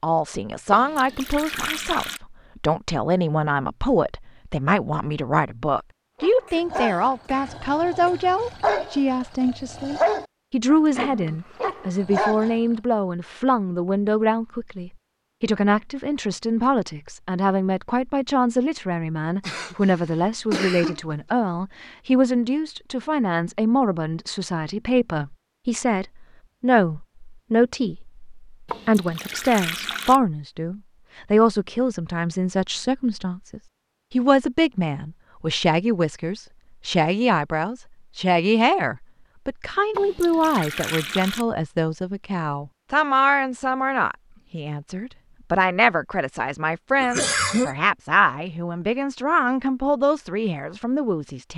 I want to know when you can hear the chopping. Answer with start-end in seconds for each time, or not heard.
not heard.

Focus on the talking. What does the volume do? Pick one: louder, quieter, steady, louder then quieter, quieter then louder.
steady.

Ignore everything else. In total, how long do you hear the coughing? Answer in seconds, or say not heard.
4 s.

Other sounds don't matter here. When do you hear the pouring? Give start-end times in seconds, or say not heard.
0.7-2.2, 28.6-30.2, 39.9-41.5.